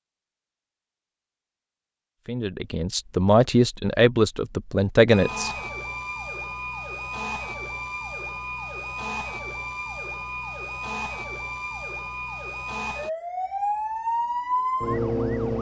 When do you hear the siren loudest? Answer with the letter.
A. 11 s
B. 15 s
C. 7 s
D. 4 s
B.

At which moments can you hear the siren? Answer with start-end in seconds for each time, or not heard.
5.1-15.5.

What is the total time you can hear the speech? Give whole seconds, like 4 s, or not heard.
3 s.